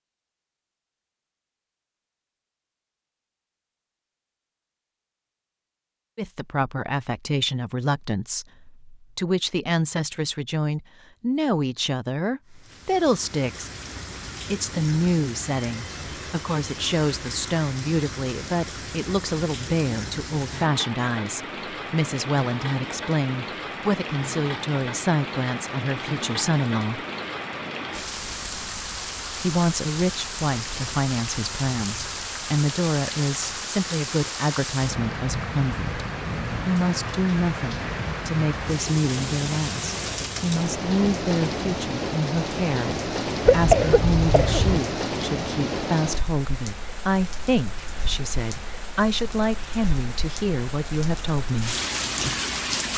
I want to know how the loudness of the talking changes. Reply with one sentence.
The loudness of the talking stays about the same.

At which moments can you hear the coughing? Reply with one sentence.
You can hear the coughing from 43.5 to 44.8 s.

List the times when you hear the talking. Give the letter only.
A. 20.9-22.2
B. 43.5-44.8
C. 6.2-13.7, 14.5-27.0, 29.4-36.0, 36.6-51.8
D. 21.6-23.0
C.